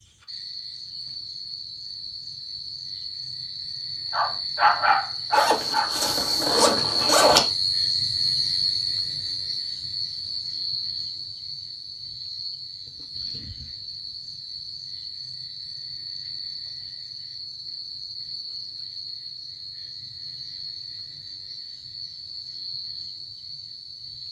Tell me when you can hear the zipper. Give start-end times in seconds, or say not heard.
5.3-7.5.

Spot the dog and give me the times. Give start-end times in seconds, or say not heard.
4.1-5.9.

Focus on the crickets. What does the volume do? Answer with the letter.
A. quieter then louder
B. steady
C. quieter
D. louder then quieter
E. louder
D.